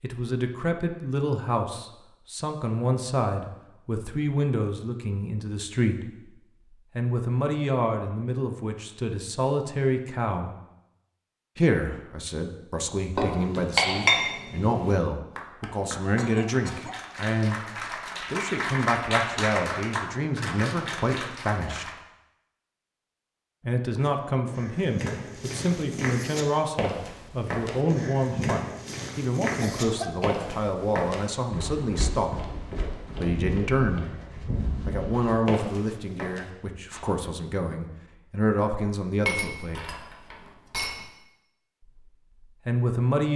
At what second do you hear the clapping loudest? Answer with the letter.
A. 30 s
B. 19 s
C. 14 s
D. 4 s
B.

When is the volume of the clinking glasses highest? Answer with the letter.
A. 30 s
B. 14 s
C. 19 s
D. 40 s
B.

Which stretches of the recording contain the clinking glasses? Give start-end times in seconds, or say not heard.
13.2-14.9, 39.2-41.0.